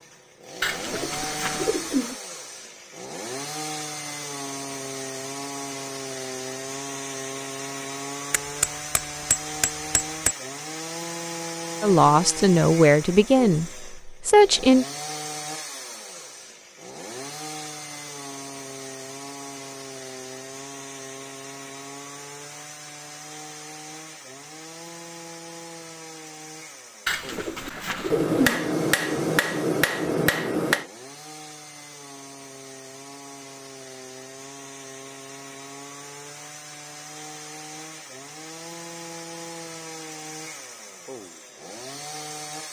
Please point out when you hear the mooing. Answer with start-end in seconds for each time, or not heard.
not heard.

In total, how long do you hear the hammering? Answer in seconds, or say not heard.
5 s.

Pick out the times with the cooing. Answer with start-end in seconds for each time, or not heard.
0.6-2.1, 27.1-28.6.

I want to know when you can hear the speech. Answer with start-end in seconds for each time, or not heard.
11.8-14.8.